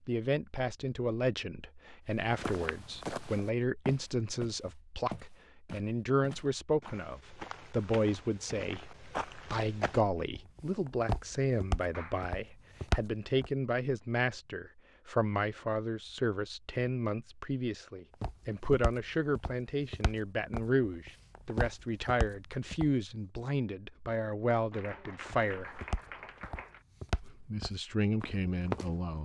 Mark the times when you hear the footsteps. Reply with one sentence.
You can hear the footsteps from 2.4 to 13.5 s, from 18.2 to 22.9 s and from 25.3 to 29.2 s.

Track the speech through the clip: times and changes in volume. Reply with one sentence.
The speech can be heard from 0.1 to 25.8 s, at a steady volume; and briefly from 27.2 to 29.2 s.